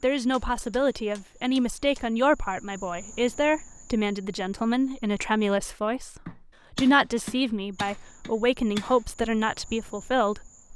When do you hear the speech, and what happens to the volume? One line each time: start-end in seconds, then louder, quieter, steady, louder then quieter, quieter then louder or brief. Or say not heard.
0.0-10.5 steady.